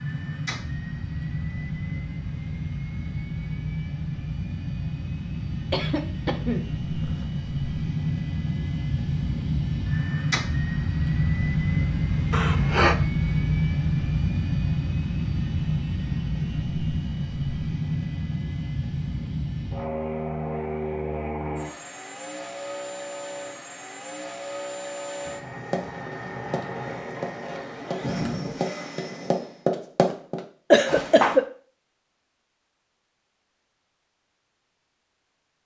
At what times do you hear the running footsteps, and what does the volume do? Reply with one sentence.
The running footsteps can be heard from 25.7 to 31.4 s, getting louder.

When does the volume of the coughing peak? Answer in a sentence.
The loudest moment of the coughing is at 31 seconds.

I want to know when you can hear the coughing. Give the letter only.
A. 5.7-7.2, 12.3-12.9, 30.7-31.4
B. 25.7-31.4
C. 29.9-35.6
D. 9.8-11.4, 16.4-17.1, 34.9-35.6
A.